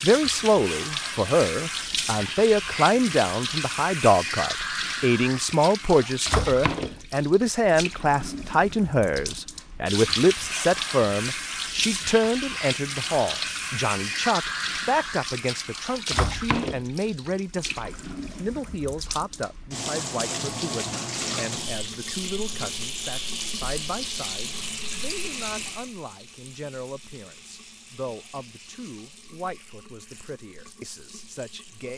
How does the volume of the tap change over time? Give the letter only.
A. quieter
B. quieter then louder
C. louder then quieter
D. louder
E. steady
A.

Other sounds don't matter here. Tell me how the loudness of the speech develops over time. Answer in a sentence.
The loudness of the speech goes down.